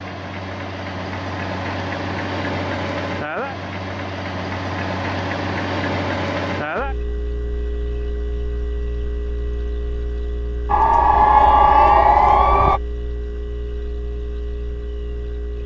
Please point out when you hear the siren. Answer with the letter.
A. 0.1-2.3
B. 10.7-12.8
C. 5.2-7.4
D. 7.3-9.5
B.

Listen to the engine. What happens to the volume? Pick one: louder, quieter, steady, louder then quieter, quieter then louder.
quieter.